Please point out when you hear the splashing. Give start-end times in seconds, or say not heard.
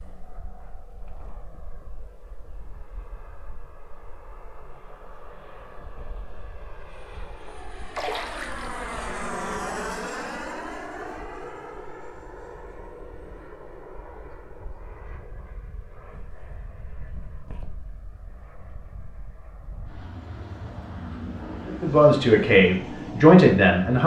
8.0-8.8.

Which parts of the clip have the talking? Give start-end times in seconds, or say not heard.
21.6-24.0.